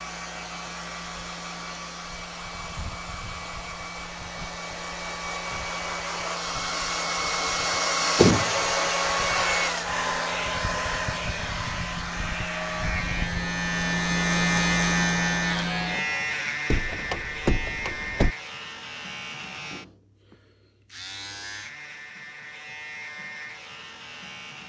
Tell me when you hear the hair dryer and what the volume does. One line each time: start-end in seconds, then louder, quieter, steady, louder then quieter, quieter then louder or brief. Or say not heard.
0.0-13.3 louder then quieter.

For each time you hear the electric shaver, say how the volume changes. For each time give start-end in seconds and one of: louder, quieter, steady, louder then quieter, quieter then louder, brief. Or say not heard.
0.0-24.6 louder then quieter.